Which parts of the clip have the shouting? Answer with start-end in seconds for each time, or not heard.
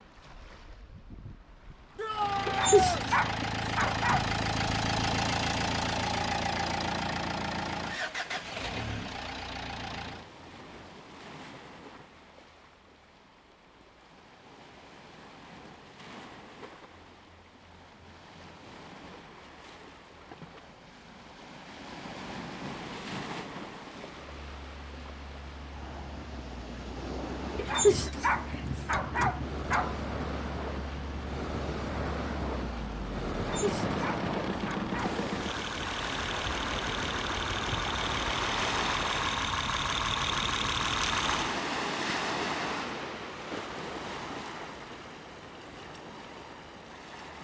1.9-3.0.